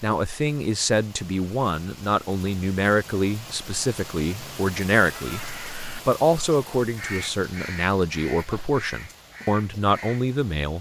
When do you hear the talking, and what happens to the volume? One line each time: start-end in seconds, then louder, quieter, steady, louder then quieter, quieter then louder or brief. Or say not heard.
0.0-5.4 steady
6.0-10.7 steady.